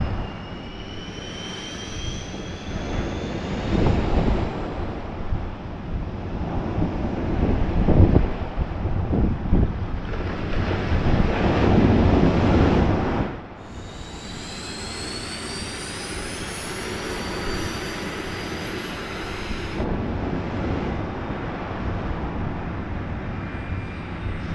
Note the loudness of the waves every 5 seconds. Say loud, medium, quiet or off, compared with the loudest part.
medium, loud, loud, quiet, medium.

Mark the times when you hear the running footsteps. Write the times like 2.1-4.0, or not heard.
not heard.